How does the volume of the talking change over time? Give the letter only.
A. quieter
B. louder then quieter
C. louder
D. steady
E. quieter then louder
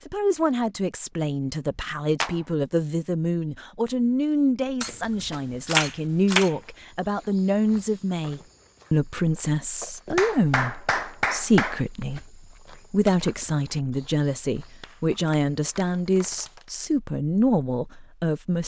D.